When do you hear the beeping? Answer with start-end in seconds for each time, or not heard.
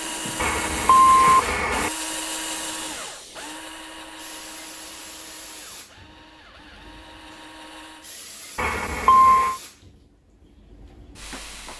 0.3-1.9, 8.6-9.6.